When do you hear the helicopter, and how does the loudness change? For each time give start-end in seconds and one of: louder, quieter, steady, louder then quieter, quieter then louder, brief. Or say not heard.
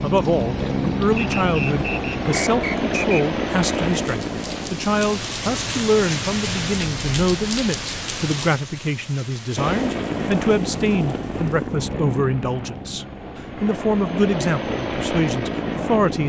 0.0-7.2 quieter
9.6-16.2 quieter then louder.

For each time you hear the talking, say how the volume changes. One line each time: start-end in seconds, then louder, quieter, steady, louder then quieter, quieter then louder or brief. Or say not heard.
0.0-16.2 steady.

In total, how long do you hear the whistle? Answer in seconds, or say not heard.
2 s.